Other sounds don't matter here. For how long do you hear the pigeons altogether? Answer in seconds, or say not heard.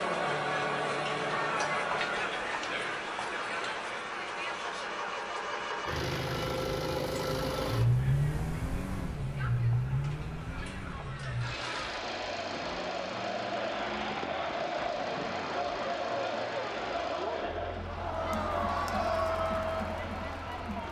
not heard.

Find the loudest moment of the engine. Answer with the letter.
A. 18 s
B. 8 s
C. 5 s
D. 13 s
B.